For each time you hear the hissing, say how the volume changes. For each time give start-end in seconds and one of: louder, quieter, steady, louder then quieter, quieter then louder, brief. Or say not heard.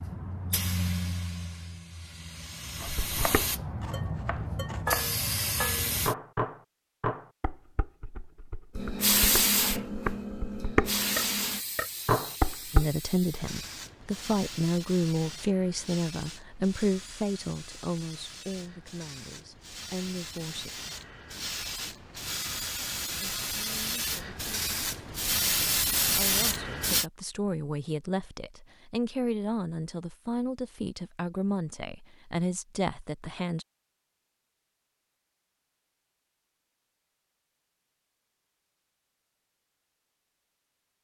0.0-6.2 quieter then louder
8.8-27.1 quieter then louder.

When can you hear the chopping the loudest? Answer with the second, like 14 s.
5 s.